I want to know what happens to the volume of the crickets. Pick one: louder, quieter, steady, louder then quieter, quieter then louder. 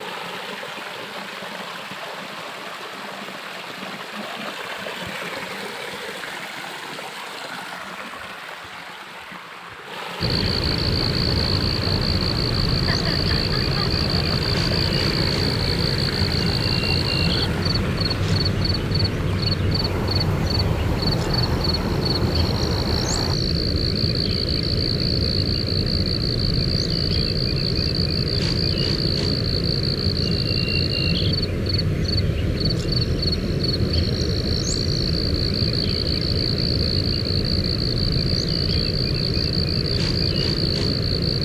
steady.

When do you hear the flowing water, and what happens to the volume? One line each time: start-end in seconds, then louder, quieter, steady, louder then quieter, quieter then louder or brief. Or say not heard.
0.0-23.4 steady.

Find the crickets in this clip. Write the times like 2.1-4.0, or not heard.
10.2-41.3.